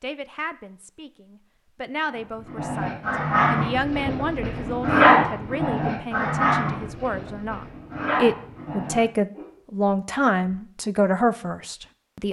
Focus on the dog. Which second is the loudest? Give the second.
5 s.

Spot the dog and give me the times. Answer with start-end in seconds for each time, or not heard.
2.1-9.4.